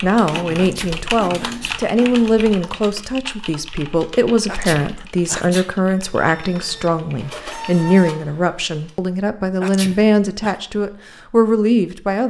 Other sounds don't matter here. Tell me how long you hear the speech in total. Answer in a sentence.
You can hear the speech for 12 seconds altogether.